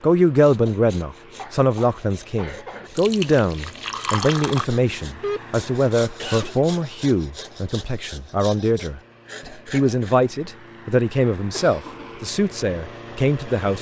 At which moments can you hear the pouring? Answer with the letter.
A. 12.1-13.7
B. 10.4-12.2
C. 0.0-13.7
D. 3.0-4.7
D.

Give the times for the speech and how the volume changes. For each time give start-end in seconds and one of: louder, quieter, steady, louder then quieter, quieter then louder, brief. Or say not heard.
0.0-13.7 steady.